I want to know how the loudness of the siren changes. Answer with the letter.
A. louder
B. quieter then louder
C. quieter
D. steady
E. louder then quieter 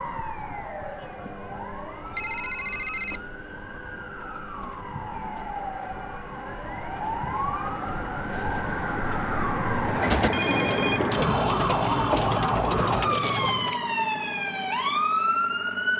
A.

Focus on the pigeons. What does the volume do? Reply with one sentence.
The loudness of the pigeons goes up.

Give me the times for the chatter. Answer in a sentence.
The chatter can't be heard in this clip.